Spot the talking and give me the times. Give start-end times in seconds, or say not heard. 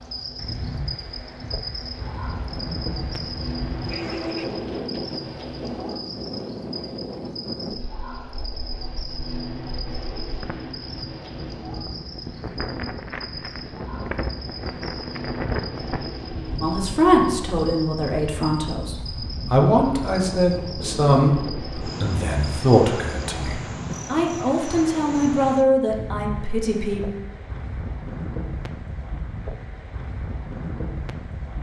16.6-27.1.